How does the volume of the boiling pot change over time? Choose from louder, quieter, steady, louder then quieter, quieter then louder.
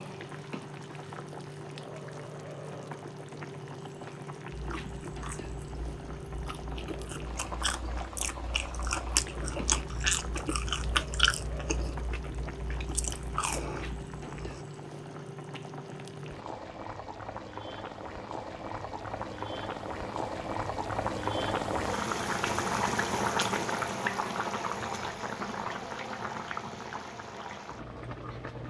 louder.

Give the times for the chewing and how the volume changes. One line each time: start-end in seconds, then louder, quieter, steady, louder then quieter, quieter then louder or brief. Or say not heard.
4.5-14.7 louder then quieter.